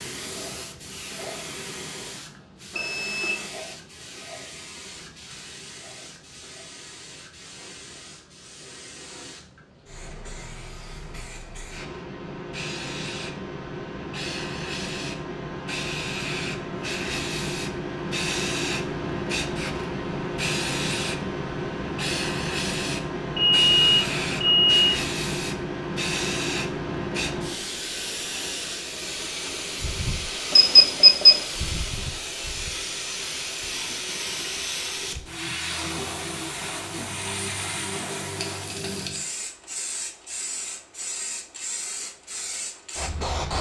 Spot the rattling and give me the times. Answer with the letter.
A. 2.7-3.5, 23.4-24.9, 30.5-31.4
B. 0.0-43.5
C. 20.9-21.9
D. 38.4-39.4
D.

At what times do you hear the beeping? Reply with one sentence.
You can hear the beeping from 2.7 to 3.5 s, from 23.4 to 24.9 s and from 30.5 to 31.4 s.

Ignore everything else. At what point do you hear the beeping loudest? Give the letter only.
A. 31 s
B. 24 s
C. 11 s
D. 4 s
A.